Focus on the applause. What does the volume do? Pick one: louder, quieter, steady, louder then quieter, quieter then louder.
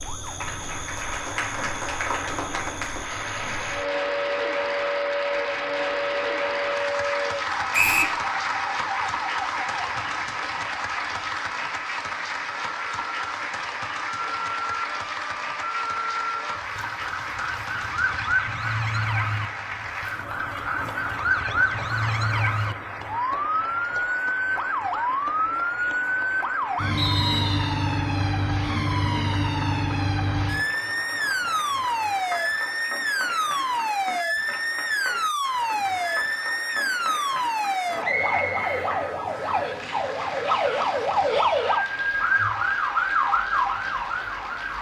quieter.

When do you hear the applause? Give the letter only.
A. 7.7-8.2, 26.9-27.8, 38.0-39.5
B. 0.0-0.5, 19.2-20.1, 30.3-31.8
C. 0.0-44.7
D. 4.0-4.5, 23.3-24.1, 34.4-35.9
C.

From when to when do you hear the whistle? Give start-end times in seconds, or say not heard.
7.7-8.2, 26.9-27.8, 38.0-39.5.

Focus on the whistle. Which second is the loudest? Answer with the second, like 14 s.
8 s.